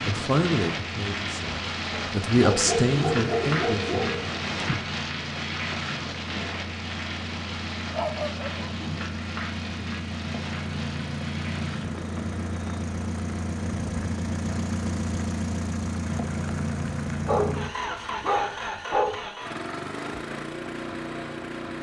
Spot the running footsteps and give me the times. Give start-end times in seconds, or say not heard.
not heard.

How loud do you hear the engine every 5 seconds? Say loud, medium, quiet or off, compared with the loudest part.
medium, medium, loud, loud, loud.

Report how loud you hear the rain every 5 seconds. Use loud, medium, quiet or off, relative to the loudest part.
loud, loud, medium, quiet, off.